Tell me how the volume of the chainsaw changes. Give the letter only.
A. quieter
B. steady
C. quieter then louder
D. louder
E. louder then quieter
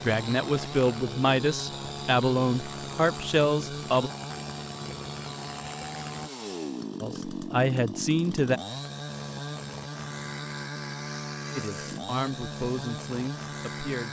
B.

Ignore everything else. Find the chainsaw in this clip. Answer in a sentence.
You can hear the chainsaw from 0.0 to 14.0 s.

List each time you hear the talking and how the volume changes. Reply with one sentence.
You can hear the talking from 0.0 to 4.1 s, at a steady volume; briefly from 7.0 to 8.6 s; and briefly from 11.6 to 14.0 s.